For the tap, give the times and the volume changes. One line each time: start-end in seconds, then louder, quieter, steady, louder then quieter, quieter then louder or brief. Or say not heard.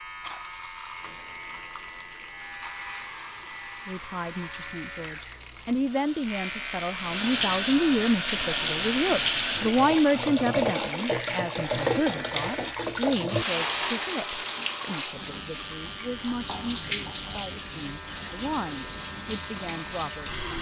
0.0-20.5 louder.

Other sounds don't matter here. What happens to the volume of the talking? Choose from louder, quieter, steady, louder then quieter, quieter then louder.
louder then quieter.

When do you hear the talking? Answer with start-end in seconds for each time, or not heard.
3.9-20.5.